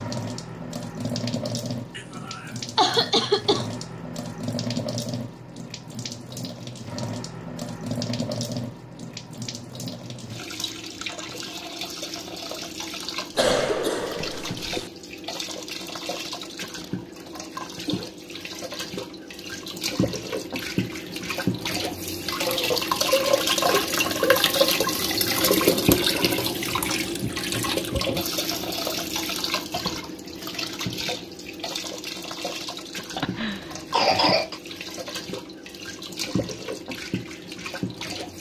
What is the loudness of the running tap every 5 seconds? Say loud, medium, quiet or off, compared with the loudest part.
medium, medium, medium, medium, loud, loud, medium, medium.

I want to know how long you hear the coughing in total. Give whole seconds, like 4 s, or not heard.
5 s.